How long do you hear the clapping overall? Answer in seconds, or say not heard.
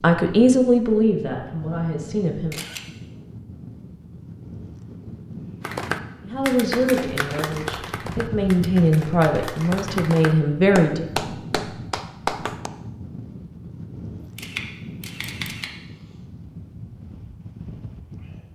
7 s.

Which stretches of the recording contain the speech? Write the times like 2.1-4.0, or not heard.
0.0-2.6, 6.2-11.1.